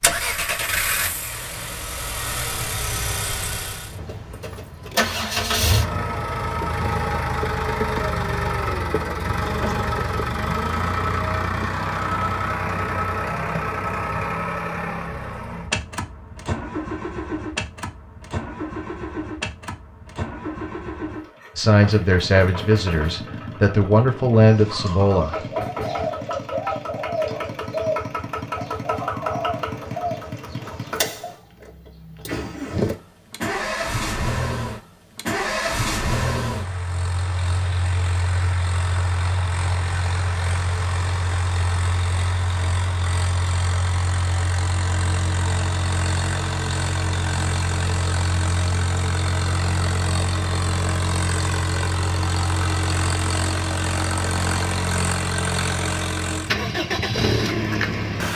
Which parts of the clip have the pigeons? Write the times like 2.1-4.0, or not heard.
24.4-31.4.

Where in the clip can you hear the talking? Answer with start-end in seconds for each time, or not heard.
21.6-25.4.